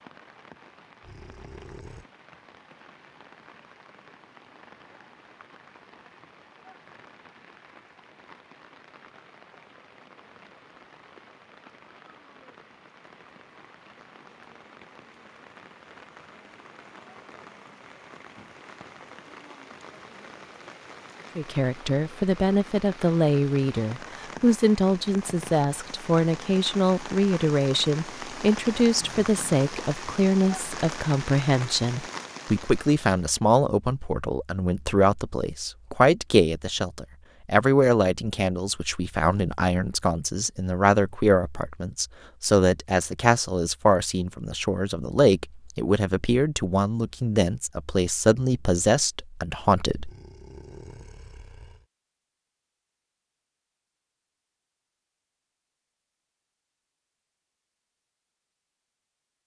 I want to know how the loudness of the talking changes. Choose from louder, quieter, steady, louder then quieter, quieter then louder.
steady.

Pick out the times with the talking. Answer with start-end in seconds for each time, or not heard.
21.4-50.1.